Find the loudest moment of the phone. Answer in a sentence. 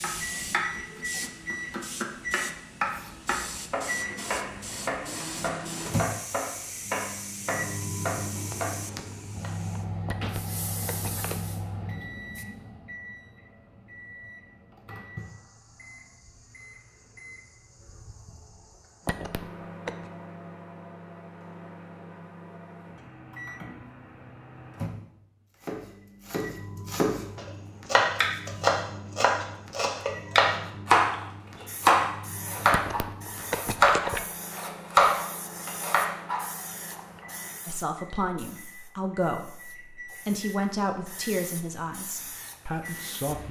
The loudest moment of the phone is at 34 seconds.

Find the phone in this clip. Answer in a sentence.
The phone can be heard from 10.1 to 11.3 s, from 19.1 to 20.1 s and from 32.7 to 34.2 s.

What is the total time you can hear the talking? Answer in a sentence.
You can hear the talking for 6 seconds altogether.